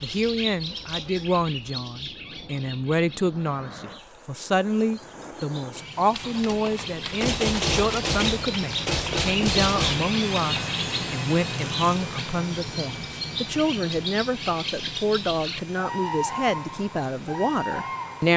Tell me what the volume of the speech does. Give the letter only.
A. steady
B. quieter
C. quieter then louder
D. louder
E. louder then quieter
A.